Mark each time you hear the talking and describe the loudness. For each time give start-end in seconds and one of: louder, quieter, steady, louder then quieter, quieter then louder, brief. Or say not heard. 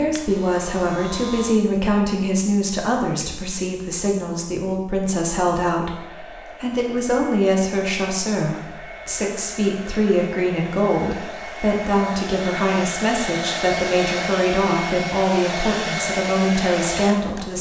0.0-17.5 steady.